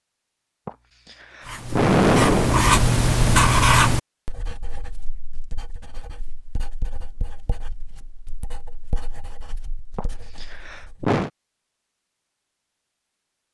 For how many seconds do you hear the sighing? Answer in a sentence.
The sighing can be heard for 3 seconds in total.